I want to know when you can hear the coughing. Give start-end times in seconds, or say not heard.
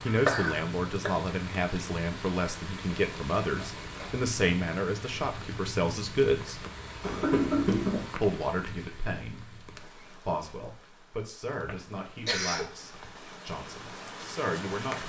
0.1-1.1, 7.0-8.1, 11.6-13.1.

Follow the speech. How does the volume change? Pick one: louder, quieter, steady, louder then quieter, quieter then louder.
quieter.